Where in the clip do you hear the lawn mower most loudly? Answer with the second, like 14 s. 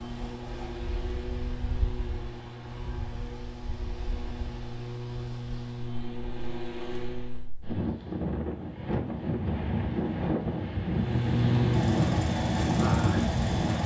12 s.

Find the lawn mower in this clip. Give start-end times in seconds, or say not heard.
0.0-7.5, 10.9-13.8.